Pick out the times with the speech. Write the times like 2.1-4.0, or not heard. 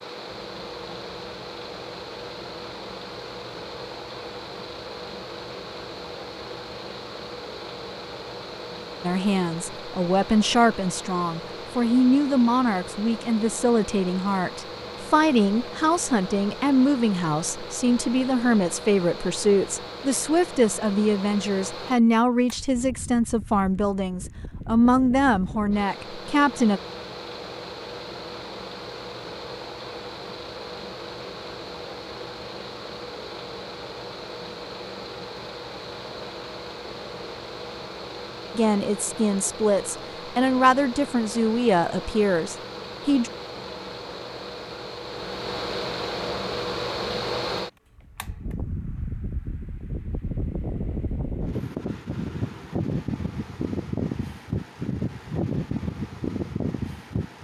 9.0-26.8, 38.5-43.3.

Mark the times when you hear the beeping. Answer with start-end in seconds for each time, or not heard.
not heard.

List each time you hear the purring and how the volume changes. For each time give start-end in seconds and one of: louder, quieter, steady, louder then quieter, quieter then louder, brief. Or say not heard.
not heard.